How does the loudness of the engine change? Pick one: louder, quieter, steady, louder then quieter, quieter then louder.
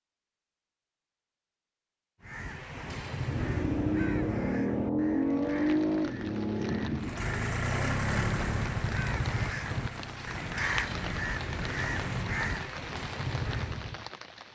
quieter.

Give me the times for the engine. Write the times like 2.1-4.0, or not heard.
3.2-12.2.